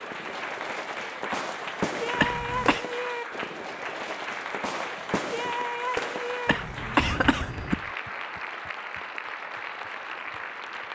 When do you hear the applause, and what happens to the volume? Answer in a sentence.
The applause can be heard from 0.0 to 10.8 s, at a steady volume.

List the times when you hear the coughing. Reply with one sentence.
You can hear the coughing from 2.1 to 2.9 s and from 6.5 to 7.8 s.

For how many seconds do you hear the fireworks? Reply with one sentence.
You can hear the fireworks for 8 seconds altogether.